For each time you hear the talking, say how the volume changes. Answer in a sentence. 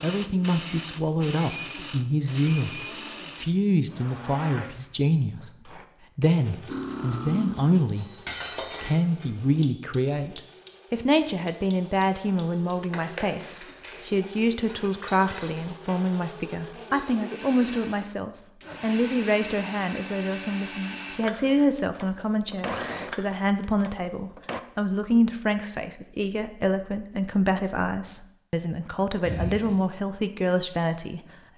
You can hear the talking from 0.0 to 8.1 s, at a steady volume; and from 8.8 to 31.5 s, at a steady volume.